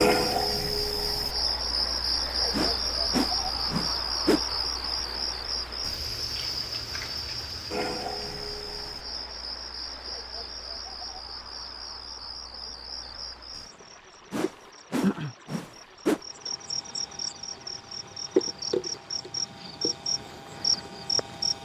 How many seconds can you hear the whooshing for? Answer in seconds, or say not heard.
4 s.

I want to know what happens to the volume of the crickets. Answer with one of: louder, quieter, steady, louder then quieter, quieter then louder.
quieter then louder.